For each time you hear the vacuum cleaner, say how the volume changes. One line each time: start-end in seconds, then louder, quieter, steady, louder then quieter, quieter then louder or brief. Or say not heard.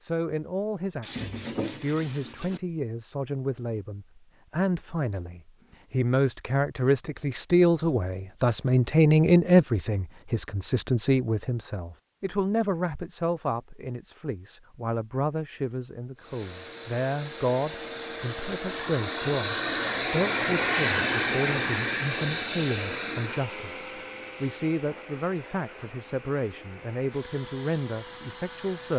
16.1-28.9 louder then quieter.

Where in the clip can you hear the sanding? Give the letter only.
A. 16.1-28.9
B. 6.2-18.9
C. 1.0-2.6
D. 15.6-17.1
C.